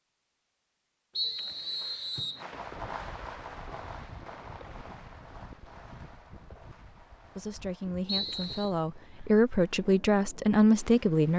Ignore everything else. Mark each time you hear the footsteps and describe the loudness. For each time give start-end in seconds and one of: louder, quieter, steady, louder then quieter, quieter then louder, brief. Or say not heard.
not heard.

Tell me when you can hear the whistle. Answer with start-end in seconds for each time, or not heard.
1.1-2.5, 8.1-8.7.